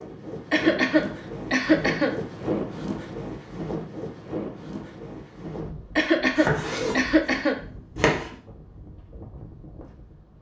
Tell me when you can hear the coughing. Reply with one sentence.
The coughing can be heard from 0.5 to 2.1 s and from 6.0 to 7.6 s.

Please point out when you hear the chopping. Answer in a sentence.
The chopping can be heard from 6.3 to 8.3 s.